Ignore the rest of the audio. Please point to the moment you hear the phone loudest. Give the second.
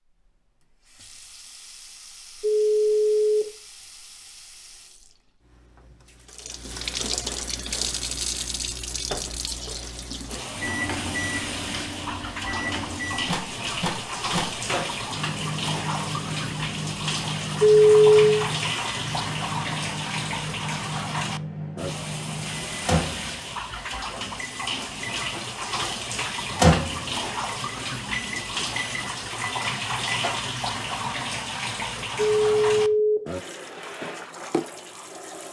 18 s.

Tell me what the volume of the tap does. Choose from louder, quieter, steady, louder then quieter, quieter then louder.
louder.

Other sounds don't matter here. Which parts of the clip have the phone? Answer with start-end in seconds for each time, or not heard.
2.4-3.5, 17.6-18.4, 32.4-33.2.